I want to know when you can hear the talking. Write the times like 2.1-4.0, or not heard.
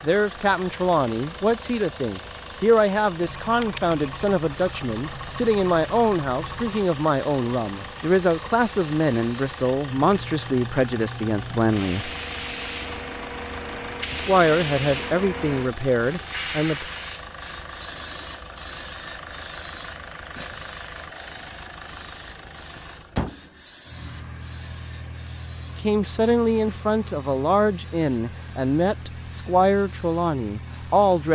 0.0-12.1, 14.1-16.9, 25.8-31.3.